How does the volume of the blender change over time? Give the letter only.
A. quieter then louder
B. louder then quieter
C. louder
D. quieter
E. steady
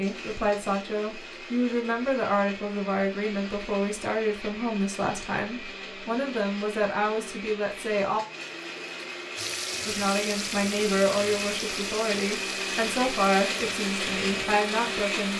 C.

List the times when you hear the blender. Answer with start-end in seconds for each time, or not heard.
0.0-15.3.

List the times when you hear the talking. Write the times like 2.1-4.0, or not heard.
0.0-8.2, 9.8-15.3.